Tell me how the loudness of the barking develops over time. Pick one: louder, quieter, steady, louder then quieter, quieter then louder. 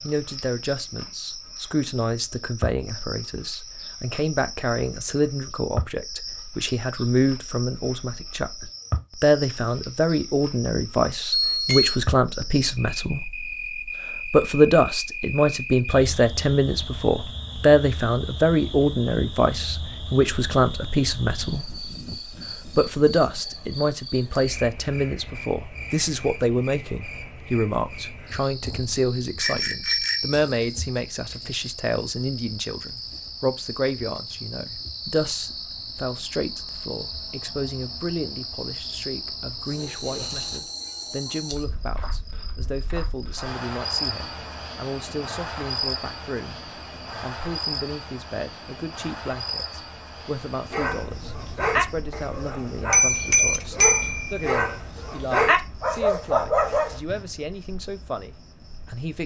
quieter then louder.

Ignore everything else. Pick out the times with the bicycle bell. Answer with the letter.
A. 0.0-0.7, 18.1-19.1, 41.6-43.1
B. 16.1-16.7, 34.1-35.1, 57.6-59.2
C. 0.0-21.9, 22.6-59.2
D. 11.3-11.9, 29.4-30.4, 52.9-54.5
D.